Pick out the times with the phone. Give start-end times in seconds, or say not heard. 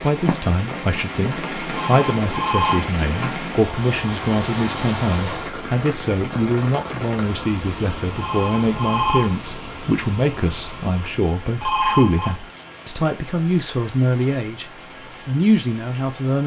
1.7-2.9, 8.2-9.3, 11.6-12.3.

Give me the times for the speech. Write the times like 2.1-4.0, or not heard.
0.0-16.4.